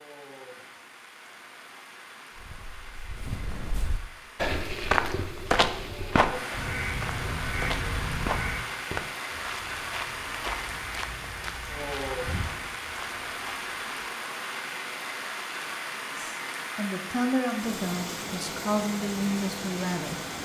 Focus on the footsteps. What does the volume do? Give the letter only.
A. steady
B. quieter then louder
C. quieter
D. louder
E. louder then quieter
E.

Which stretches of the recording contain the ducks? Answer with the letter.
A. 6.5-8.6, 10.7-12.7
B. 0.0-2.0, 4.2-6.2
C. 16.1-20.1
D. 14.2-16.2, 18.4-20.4
A.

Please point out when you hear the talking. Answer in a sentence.
The talking can be heard from 16.1 to 20.1 s.